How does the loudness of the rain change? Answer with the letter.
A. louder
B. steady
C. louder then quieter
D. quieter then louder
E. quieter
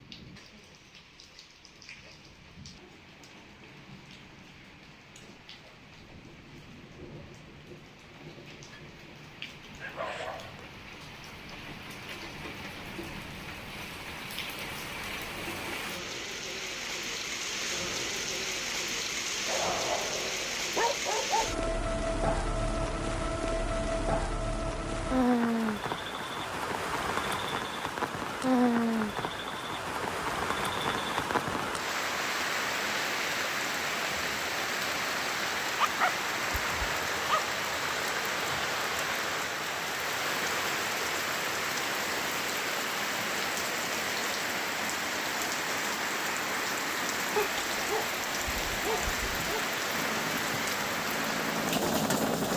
A.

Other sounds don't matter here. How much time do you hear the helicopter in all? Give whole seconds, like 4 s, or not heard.
3 s.